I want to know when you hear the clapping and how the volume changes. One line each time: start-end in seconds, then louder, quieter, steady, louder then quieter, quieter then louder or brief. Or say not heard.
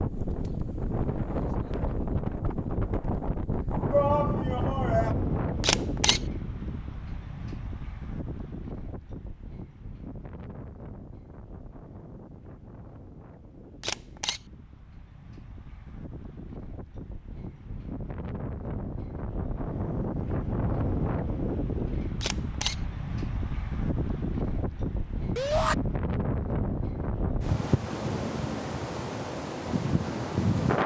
not heard.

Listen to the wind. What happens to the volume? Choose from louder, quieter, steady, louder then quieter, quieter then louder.
quieter then louder.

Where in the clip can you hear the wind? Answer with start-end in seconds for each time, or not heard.
0.0-30.8.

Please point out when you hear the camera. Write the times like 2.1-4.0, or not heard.
5.6-6.2, 13.8-14.4, 22.2-22.8.